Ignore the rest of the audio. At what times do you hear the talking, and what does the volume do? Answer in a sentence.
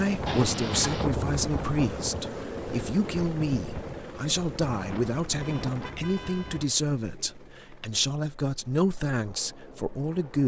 The talking can be heard from 0.0 to 10.4 s, at a steady volume.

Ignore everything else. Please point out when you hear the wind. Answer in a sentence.
You can hear the wind from 0.0 to 6.7 s.